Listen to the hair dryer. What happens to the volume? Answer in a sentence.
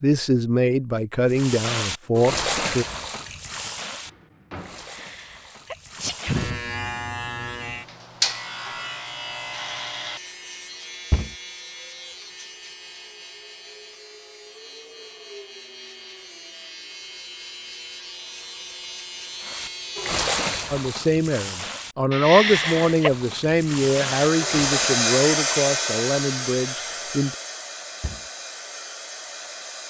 The volume of the hair dryer goes down.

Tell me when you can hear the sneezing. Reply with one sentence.
You can hear the sneezing from 4.9 to 6.6 s and from 22.1 to 23.1 s.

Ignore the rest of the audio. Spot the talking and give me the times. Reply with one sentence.
You can hear the talking from 0.0 to 2.9 s and from 20.7 to 27.4 s.